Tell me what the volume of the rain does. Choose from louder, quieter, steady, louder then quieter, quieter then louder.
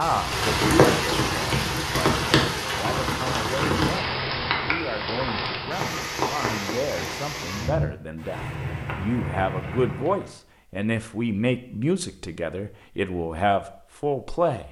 quieter.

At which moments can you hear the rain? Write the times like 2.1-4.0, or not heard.
0.0-10.3.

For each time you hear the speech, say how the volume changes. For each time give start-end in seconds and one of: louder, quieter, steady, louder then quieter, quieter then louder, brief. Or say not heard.
0.0-14.6 louder.